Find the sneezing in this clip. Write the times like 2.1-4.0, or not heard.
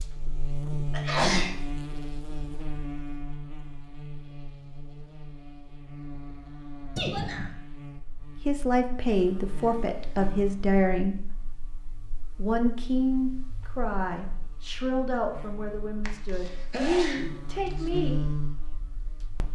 0.9-1.6, 7.0-7.5, 16.1-17.4.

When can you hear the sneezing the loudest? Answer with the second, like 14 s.
1 s.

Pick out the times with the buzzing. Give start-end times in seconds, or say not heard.
0.0-19.4.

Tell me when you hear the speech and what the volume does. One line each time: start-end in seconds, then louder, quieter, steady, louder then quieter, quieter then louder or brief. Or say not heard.
8.4-11.2 brief
12.3-18.3 quieter then louder.